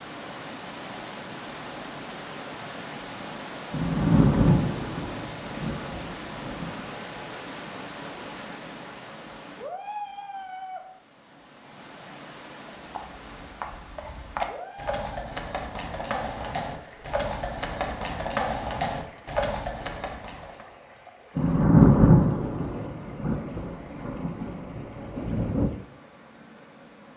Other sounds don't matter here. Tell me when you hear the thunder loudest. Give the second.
22 s.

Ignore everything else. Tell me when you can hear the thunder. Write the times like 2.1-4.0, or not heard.
3.7-6.8, 21.4-25.7.